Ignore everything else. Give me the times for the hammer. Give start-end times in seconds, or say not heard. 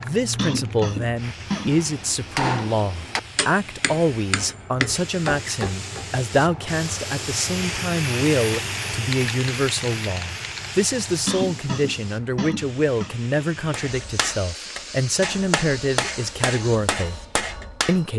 1.6-6.1, 13.7-18.1.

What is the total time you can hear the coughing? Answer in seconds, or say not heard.
3 s.